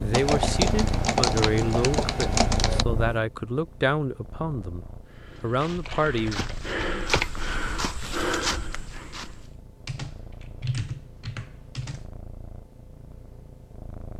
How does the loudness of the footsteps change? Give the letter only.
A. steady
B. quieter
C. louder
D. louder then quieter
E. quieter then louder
C.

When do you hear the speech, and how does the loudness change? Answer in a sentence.
The speech can be heard from 0.0 to 6.4 s, at a steady volume.